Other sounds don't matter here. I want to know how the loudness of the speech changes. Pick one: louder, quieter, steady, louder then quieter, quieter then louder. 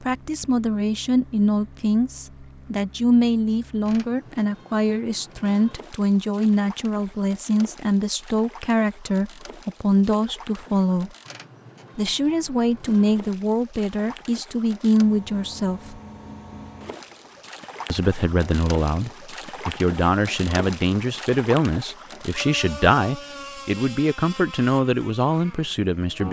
steady.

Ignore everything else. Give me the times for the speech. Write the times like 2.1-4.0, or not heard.
0.0-11.1, 11.9-16.0, 17.9-26.2.